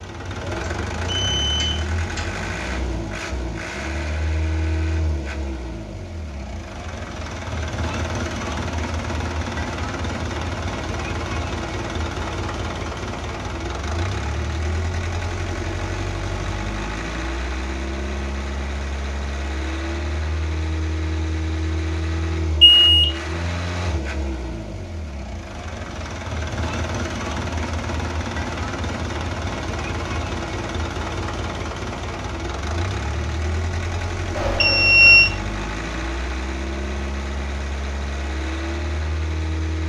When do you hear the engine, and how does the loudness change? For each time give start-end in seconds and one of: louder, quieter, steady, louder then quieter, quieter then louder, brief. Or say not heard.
0.0-39.8 steady.